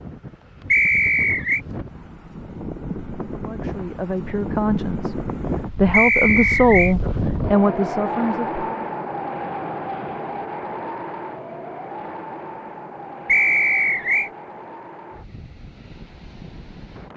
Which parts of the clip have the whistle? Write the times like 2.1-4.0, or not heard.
0.7-1.6, 5.9-7.0, 13.2-14.3.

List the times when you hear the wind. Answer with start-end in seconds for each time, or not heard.
0.0-17.1.